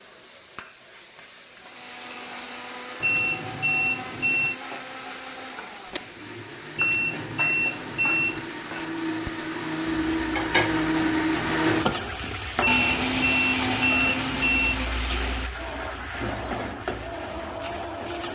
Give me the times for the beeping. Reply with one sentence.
The beeping can be heard from 3.0 to 4.5 s, from 6.8 to 8.4 s and from 12.6 to 14.8 s.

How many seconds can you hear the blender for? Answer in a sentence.
The blender can be heard for 17 seconds in total.